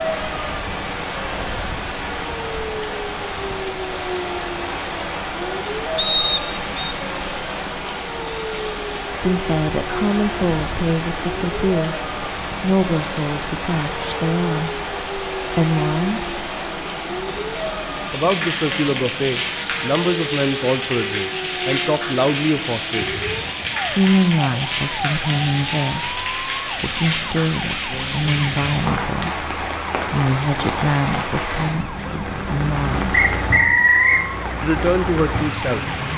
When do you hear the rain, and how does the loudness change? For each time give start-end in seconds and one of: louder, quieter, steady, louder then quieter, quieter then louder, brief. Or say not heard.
0.0-36.1 steady.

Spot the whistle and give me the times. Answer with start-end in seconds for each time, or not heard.
6.0-7.0, 33.1-34.2.